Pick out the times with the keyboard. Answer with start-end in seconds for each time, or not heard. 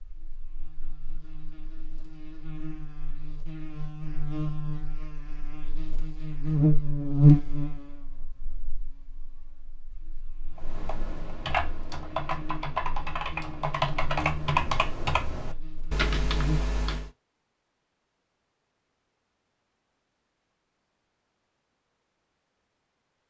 10.6-17.1.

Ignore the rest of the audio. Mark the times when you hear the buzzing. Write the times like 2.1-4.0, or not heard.
0.0-16.6.